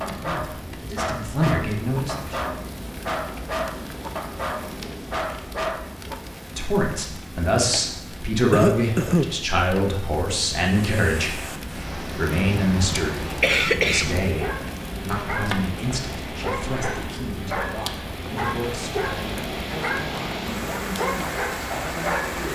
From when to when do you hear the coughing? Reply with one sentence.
You can hear the coughing from 8.5 to 9.3 s and from 12.7 to 14.3 s.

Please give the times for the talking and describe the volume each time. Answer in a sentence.
You can hear the talking briefly from 0.0 to 2.4 s; and from 6.5 to 22.5 s, getting quieter.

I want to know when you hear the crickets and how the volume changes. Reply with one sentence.
The crickets can't be heard in this clip.